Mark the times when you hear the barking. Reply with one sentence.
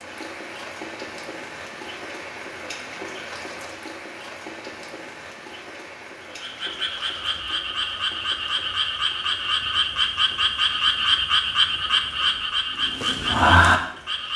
You can't hear the barking here.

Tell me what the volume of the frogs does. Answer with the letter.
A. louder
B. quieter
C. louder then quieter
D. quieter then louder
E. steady
A.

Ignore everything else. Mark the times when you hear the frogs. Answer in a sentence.
The frogs can be heard from 6.2 to 14.3 s.